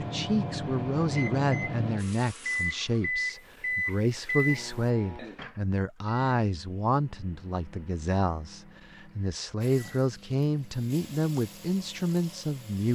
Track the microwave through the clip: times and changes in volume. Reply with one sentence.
You can hear the microwave from 0.0 to 12.7 s, getting quieter.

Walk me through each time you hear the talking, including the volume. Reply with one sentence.
The talking can be heard from 0.0 to 12.9 s, at a steady volume.